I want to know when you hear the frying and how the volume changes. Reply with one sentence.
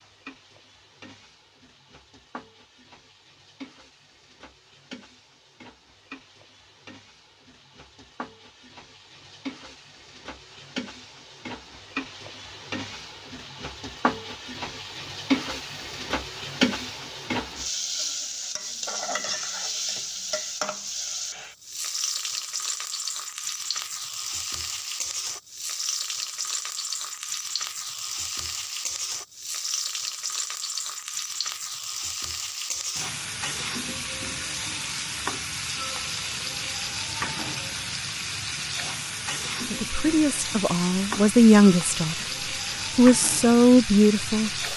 You can hear the frying from 0.0 to 44.7 s, getting louder.